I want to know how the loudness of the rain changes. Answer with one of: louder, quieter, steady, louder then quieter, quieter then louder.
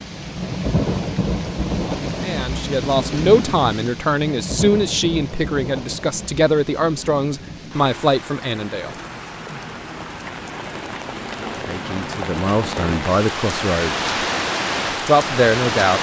quieter then louder.